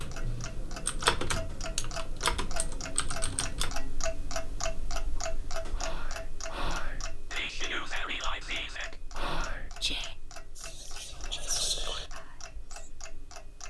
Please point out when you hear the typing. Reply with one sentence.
You can hear the typing from 0.0 to 3.8 s.